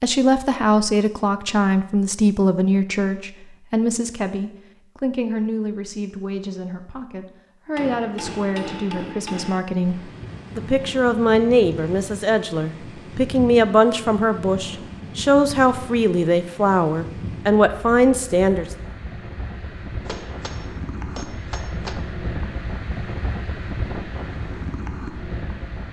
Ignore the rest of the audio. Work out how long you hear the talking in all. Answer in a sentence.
The talking can be heard for 19 seconds in total.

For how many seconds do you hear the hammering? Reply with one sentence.
You can hear the hammering for 4 seconds altogether.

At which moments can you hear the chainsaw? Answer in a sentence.
The chainsaw can't be heard in this clip.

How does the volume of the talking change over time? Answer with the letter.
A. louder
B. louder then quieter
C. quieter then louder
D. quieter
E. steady
C.